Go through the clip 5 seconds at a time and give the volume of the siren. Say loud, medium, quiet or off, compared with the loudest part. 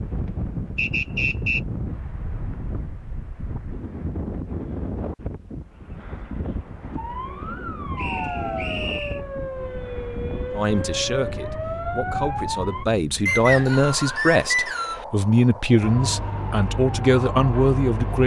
off, loud, loud, loud.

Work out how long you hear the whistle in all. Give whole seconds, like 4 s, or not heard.
4 s.